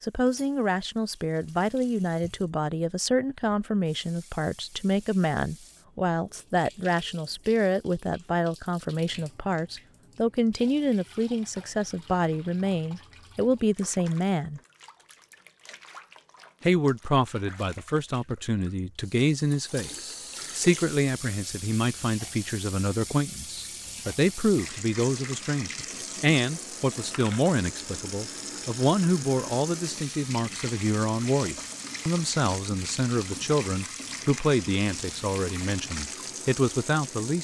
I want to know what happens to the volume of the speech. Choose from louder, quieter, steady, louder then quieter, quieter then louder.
steady.